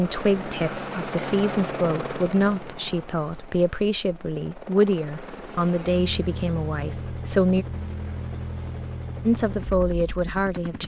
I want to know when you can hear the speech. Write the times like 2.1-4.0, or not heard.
0.0-7.7, 9.2-10.8.